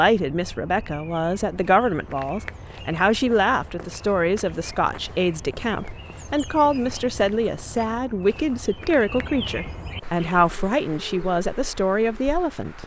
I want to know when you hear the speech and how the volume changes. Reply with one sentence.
The speech can be heard from 0.0 to 12.8 s, at a steady volume.